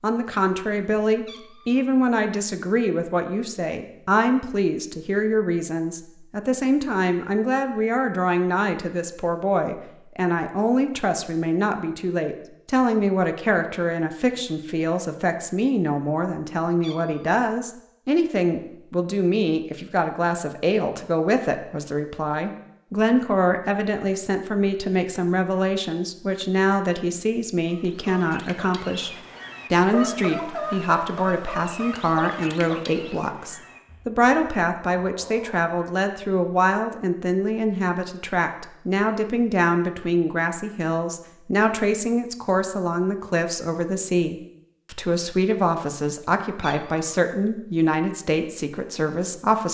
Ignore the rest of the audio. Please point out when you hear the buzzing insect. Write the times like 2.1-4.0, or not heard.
not heard.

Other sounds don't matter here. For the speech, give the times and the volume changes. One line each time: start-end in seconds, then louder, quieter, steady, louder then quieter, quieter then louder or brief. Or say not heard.
0.0-49.6 steady.